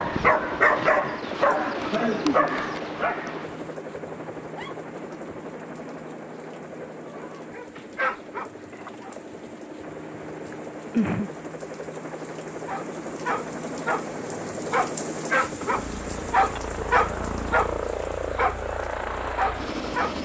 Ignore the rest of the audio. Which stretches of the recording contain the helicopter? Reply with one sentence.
You can hear the helicopter from 0.0 to 20.1 s.